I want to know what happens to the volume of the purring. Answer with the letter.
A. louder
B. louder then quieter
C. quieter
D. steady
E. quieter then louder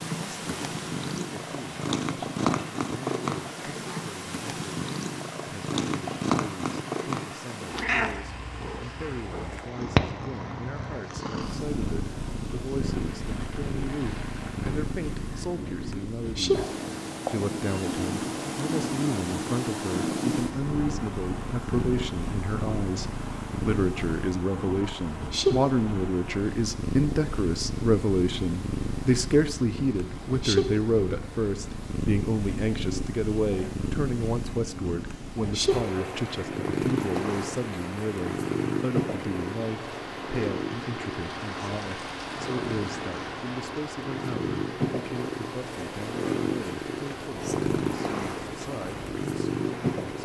D.